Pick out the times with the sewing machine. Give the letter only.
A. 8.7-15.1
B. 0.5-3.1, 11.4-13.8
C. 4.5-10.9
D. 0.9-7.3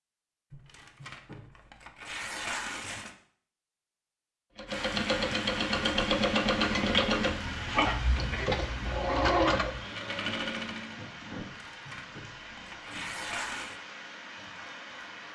C.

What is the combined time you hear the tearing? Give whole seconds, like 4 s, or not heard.
5 s.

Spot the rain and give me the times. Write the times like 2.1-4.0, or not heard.
4.7-15.3.